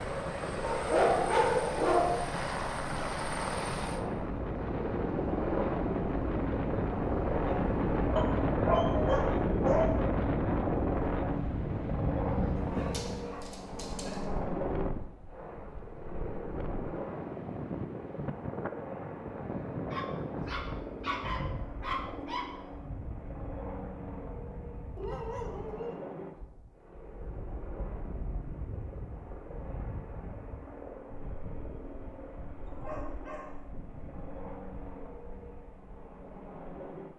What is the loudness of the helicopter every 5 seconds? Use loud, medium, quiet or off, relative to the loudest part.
loud, loud, loud, medium, medium, quiet, quiet, quiet.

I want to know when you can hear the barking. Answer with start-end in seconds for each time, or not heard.
0.6-2.3, 8.2-9.9, 12.7-14.2, 19.9-22.4, 24.9-26.1, 32.6-33.6.